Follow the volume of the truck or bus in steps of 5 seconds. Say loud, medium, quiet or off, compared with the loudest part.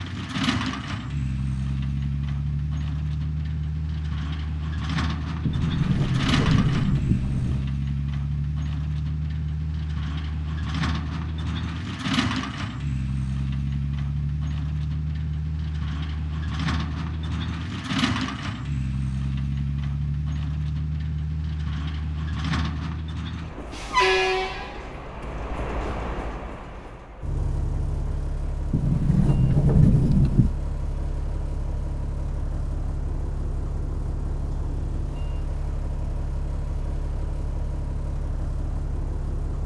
loud, loud, loud, loud, loud, medium, medium, medium.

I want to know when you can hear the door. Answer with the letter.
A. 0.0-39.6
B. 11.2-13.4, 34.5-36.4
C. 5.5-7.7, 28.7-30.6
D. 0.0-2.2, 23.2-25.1
C.